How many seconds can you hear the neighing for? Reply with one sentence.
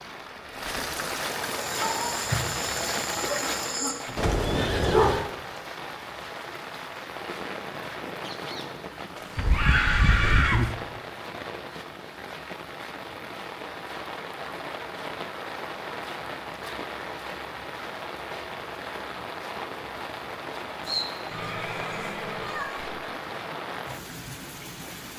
You can hear the neighing for 4 seconds altogether.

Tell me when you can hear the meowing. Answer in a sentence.
You can hear the meowing from 9.3 to 10.7 s and from 20.9 to 22.8 s.